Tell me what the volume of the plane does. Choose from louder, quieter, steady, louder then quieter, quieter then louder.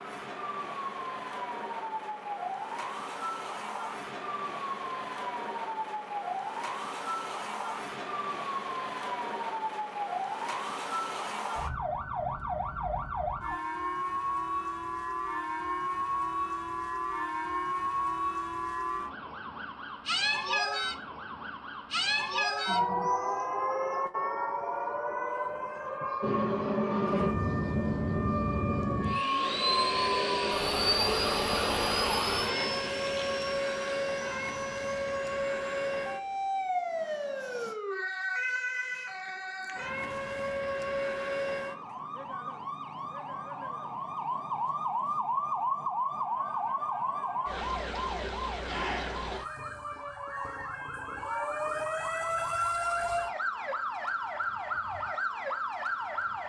quieter.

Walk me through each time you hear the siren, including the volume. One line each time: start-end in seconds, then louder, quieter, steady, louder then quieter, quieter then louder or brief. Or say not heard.
0.0-56.4 steady.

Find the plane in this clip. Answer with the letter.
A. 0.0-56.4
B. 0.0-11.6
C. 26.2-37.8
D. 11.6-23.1
C.